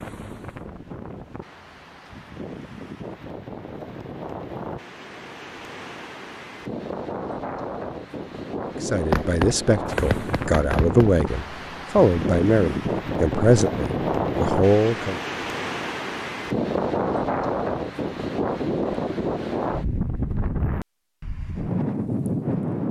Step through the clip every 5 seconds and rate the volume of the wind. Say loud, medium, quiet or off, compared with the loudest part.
medium, medium, loud, loud, loud.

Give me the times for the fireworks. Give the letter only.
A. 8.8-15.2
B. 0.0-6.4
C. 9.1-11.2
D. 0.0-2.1
C.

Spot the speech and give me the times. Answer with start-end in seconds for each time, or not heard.
8.8-15.2.